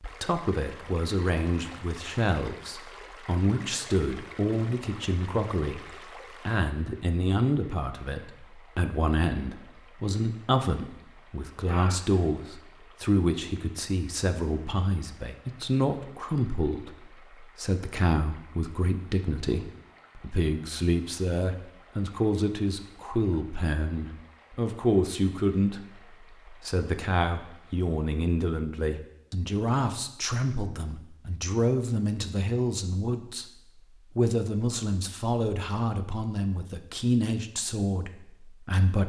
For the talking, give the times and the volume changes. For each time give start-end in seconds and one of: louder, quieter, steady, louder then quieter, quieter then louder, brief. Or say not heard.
0.2-39.0 steady.